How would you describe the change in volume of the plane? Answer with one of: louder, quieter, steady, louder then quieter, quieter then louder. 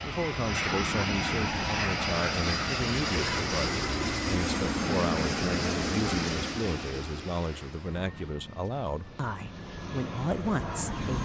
quieter.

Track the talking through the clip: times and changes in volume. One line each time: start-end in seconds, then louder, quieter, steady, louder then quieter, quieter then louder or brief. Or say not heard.
0.0-11.1 steady.